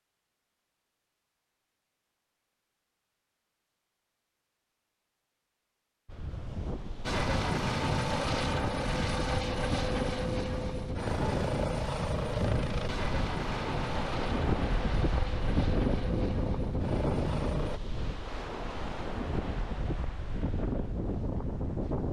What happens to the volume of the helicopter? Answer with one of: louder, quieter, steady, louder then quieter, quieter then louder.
quieter.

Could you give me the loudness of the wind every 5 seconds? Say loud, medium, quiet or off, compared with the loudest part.
off, medium, loud, loud, loud.